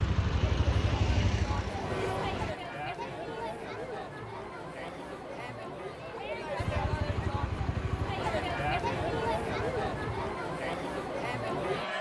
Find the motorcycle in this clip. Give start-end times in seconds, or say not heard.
0.0-2.5, 6.5-10.3.